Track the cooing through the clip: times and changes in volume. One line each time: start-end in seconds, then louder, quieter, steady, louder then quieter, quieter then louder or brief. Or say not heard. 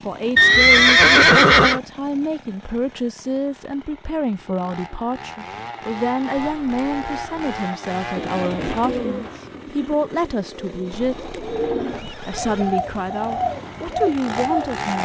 8.2-15.0 quieter then louder.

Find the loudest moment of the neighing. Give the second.
1 s.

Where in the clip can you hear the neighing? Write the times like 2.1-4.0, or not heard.
0.3-1.8, 6.4-7.5, 10.9-12.8.